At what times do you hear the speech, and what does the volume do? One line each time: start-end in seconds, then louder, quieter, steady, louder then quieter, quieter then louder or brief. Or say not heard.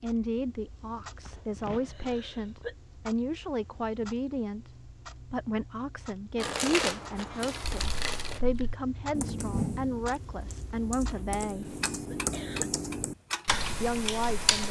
0.0-11.8 steady
13.8-14.6 brief.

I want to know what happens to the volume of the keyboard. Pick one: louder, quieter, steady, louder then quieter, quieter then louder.
quieter then louder.